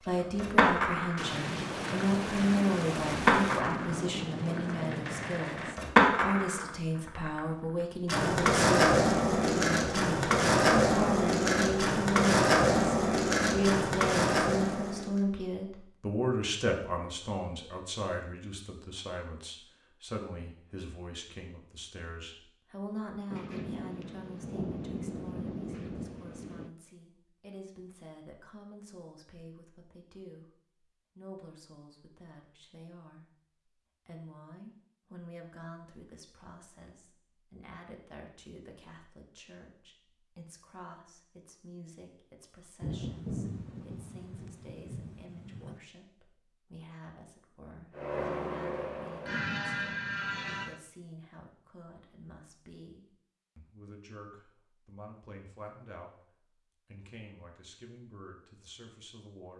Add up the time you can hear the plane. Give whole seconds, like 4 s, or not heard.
3 s.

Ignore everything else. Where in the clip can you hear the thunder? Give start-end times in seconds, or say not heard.
1.1-5.8, 23.3-26.7, 42.8-45.8.